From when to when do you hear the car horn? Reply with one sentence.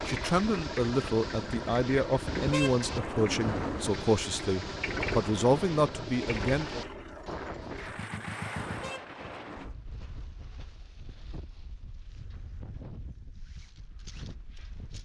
You can hear the car horn from 2.2 to 4.0 s and from 8.6 to 9.8 s.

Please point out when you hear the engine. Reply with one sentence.
The engine can be heard from 0.0 to 8.9 s.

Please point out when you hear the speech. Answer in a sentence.
You can hear the speech from 0.1 to 6.8 s.